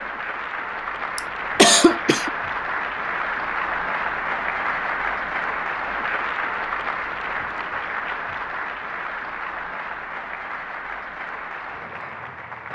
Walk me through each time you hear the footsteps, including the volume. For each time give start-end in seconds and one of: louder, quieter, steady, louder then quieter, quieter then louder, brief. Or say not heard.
not heard.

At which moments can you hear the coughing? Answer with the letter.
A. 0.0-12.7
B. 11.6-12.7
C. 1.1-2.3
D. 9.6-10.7
C.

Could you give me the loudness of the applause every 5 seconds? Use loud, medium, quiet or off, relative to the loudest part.
loud, loud, medium.